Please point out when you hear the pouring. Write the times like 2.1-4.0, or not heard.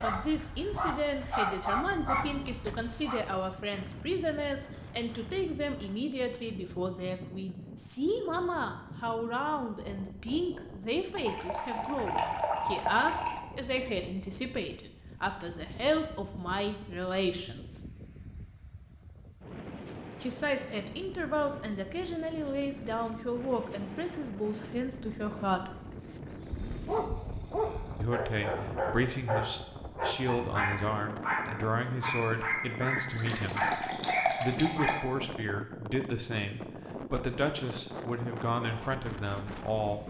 11.2-13.4, 32.9-35.0.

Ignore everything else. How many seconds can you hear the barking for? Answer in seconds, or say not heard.
12 s.